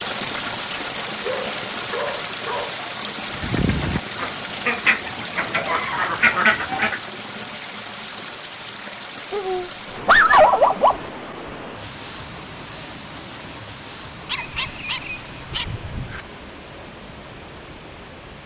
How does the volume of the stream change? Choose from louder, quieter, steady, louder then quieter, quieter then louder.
quieter.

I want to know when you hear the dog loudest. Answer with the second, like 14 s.
10 s.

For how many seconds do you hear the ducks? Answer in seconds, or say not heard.
4 s.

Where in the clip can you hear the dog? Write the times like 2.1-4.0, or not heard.
1.2-2.8, 5.3-7.0, 9.3-11.0, 14.2-16.2.